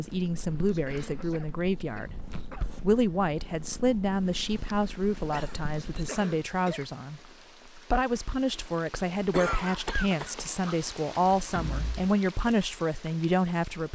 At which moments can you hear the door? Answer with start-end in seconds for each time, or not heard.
11.5-12.1.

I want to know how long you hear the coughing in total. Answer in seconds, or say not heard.
5 s.